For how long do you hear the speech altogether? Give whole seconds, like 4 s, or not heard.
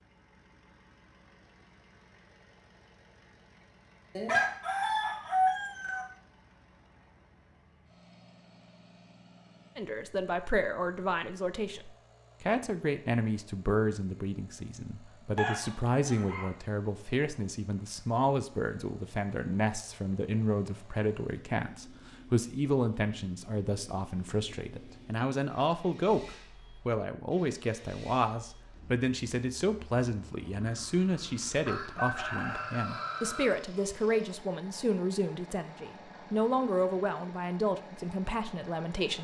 29 s.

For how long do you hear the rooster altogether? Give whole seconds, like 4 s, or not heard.
5 s.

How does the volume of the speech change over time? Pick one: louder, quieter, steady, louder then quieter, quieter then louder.
steady.